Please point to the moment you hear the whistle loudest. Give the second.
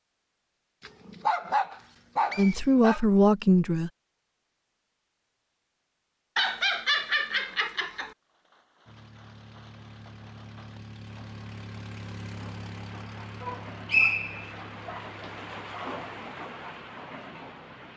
14 s.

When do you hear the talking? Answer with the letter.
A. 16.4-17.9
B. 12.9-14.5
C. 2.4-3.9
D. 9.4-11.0
C.